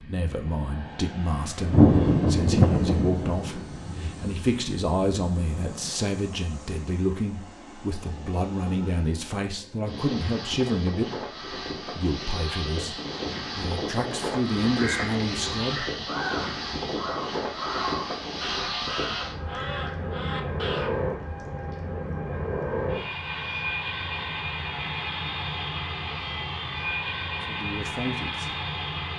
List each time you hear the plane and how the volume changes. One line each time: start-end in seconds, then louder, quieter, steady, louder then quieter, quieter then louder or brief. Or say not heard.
0.0-29.1 louder.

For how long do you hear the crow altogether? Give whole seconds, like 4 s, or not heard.
6 s.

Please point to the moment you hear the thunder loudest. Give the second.
2 s.